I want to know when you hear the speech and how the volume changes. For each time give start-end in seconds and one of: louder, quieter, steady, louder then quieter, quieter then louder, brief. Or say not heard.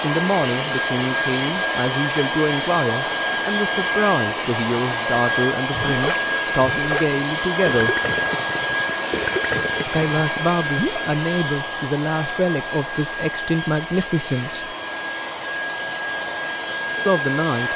0.0-8.0 steady
9.8-14.8 steady
17.1-17.7 brief.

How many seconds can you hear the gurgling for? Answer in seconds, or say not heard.
5 s.